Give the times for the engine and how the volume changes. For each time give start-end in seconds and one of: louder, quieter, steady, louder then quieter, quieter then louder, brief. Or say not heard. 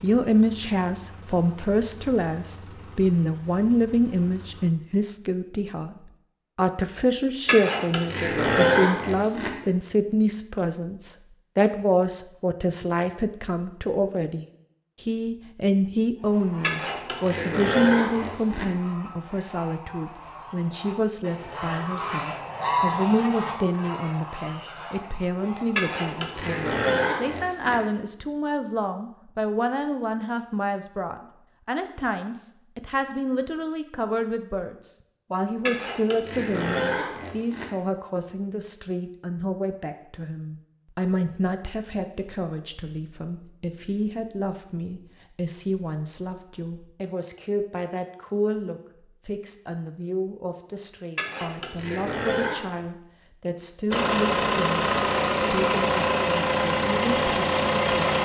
0.0-4.7 steady
53.9-58.2 steady.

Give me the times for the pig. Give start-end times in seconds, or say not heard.
7.5-9.5, 16.6-18.6, 25.8-27.8, 35.6-37.6, 51.1-52.6.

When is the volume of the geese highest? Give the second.
23 s.